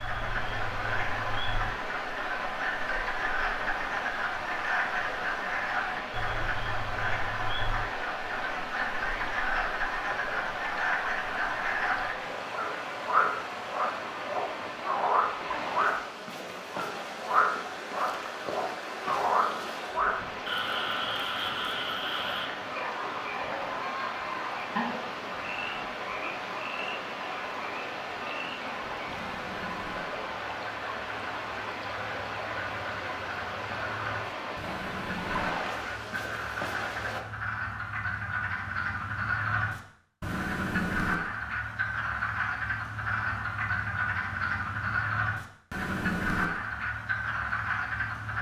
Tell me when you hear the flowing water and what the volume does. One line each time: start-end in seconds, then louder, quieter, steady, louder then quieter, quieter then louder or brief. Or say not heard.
0.0-37.2 steady.